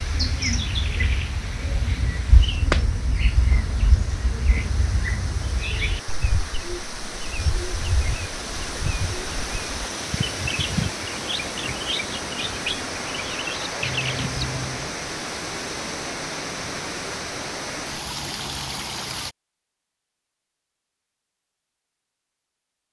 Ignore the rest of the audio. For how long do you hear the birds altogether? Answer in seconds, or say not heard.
15 s.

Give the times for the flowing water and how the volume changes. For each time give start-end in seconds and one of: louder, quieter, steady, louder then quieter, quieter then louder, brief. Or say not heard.
0.0-19.4 louder.